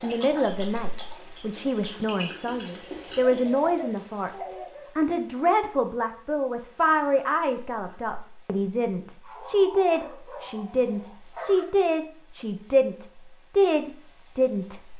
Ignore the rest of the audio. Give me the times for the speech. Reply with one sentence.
You can hear the speech from 0.0 to 14.9 s.